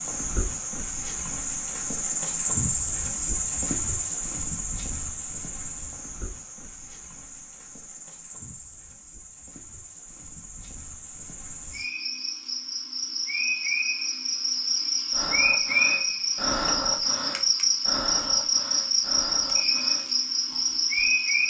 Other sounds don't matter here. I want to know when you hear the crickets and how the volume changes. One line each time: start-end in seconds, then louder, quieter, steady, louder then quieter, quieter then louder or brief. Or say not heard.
0.0-21.4 quieter then louder.